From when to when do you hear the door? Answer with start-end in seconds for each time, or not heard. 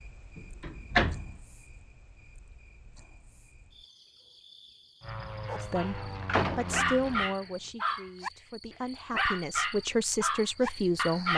0.3-1.3, 6.0-7.3.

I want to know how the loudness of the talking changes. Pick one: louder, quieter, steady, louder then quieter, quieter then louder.
quieter then louder.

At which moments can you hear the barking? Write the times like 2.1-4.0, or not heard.
5.5-6.0, 6.7-8.3, 9.1-11.3.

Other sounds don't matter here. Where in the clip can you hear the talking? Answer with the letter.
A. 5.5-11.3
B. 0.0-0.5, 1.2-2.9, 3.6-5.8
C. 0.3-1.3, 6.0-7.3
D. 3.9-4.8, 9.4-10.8
A.